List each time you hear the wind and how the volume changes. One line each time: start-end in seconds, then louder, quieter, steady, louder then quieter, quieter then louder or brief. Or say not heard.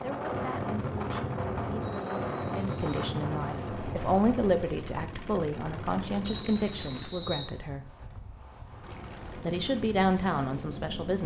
0.0-11.2 quieter then louder.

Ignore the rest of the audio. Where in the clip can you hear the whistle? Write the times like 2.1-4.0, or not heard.
1.8-3.0, 6.2-7.5.